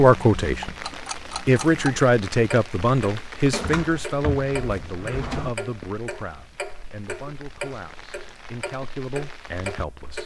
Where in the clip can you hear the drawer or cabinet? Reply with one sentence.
The drawer or cabinet can be heard from 3.5 to 5.5 s.